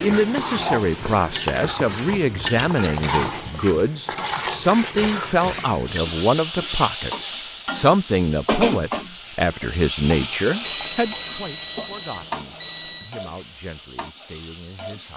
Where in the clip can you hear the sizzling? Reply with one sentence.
You can hear the sizzling from 0.0 to 15.1 s.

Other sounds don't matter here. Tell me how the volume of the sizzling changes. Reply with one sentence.
The loudness of the sizzling goes down.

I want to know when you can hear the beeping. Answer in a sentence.
You can hear the beeping from 10.6 to 13.2 s.